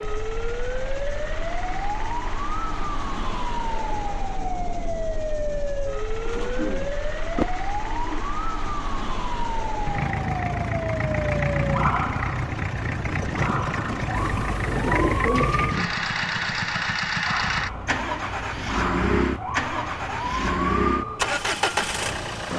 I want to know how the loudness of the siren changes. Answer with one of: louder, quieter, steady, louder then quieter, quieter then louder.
steady.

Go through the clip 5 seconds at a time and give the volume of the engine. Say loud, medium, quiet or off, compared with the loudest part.
quiet, quiet, loud, loud, loud.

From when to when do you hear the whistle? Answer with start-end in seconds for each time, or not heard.
not heard.